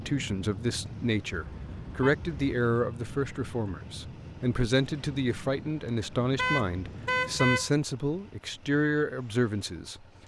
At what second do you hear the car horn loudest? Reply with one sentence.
The volume of the car horn peaks at 7 seconds.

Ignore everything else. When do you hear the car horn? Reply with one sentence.
You can hear the car horn from 1.3 to 2.3 s and from 6.3 to 7.7 s.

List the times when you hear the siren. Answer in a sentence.
You can't hear the siren here.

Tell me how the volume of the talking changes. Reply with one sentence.
The volume of the talking stays about the same.